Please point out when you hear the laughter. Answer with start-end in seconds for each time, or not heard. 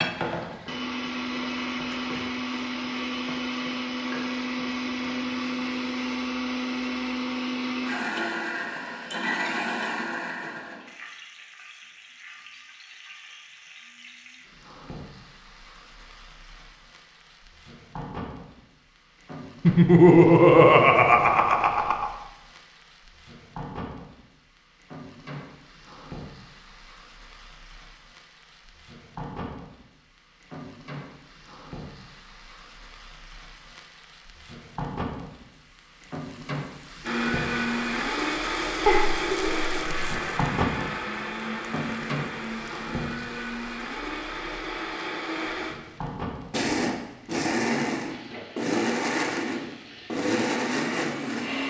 19.6-22.1, 38.9-40.2.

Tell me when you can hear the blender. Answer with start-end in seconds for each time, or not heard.
0.0-10.8, 37.0-51.6.